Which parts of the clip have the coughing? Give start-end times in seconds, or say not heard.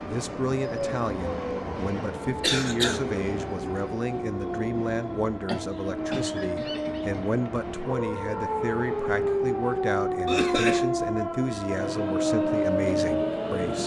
2.4-3.0, 5.5-7.5, 10.2-10.8.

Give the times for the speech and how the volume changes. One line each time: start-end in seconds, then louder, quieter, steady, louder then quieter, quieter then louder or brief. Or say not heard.
0.0-13.8 steady.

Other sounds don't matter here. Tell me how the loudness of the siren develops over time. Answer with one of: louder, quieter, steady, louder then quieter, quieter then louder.
louder.